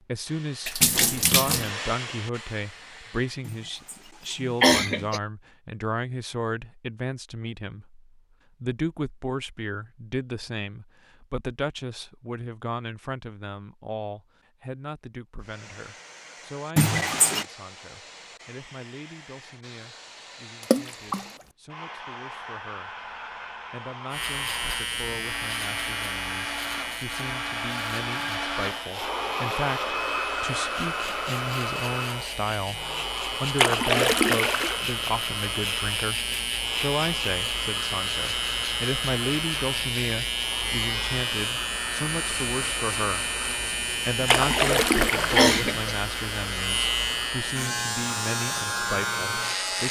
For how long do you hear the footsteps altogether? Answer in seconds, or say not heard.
not heard.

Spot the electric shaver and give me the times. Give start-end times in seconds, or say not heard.
24.1-49.8.